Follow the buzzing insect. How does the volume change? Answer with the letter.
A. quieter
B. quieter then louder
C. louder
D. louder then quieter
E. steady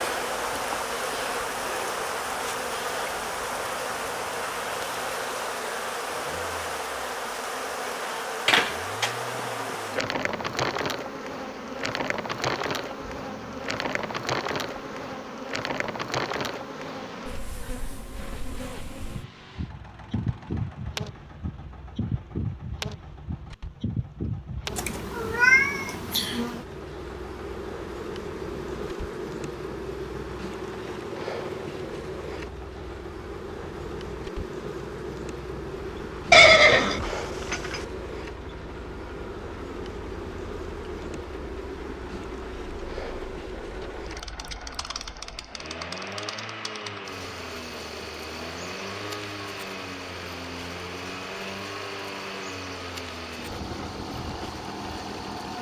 A.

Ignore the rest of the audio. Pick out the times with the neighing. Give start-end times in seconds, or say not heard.
36.3-37.8.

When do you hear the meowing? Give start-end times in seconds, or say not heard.
24.8-26.4.